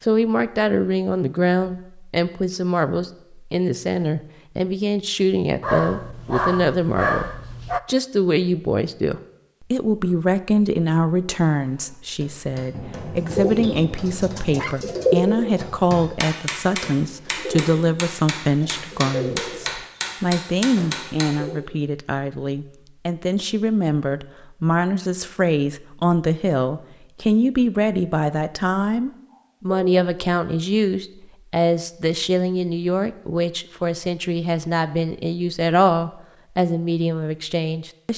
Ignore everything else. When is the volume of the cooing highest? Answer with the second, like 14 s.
15 s.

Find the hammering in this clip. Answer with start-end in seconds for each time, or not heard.
11.6-21.4.